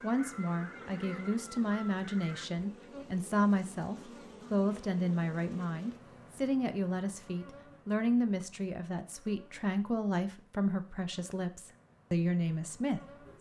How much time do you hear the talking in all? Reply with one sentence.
The talking can be heard for 13 seconds in total.